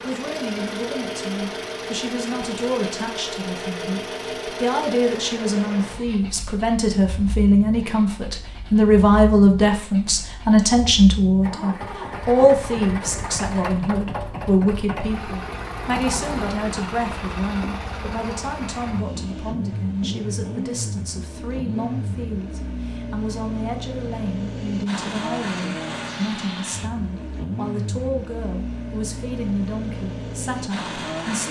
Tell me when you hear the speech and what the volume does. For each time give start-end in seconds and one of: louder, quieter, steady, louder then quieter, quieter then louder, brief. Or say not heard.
0.0-31.4 louder then quieter.